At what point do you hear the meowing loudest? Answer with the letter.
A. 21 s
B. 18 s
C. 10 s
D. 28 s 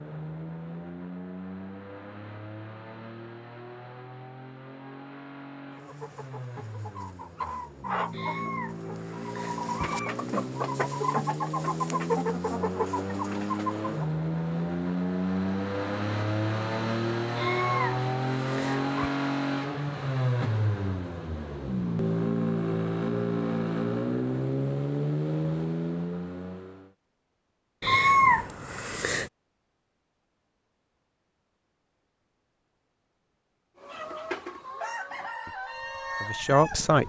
D.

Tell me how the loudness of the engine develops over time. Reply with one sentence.
The loudness of the engine goes up.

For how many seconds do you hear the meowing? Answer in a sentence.
The meowing can be heard for 5 seconds in total.